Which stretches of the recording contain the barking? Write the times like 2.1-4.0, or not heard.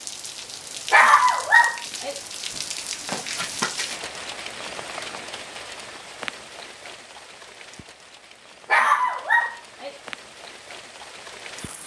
0.9-2.1, 8.7-9.9.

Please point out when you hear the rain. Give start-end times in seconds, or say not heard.
0.0-11.8.